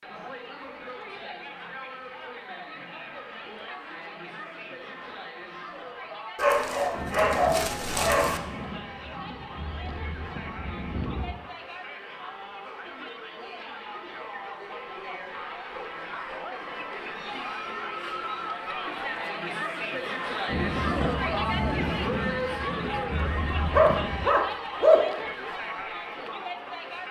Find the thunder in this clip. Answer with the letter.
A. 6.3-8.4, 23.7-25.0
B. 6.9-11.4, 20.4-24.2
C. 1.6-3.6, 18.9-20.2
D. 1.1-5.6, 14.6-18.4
B.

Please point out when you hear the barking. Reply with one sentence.
The barking can be heard from 6.3 to 8.4 s and from 23.7 to 25.0 s.